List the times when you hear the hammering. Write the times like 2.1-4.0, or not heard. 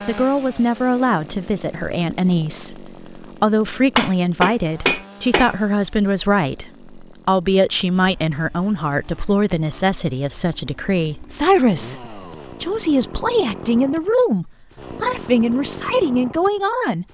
4.0-5.5.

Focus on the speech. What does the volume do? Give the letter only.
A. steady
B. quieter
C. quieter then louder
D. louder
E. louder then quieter
A.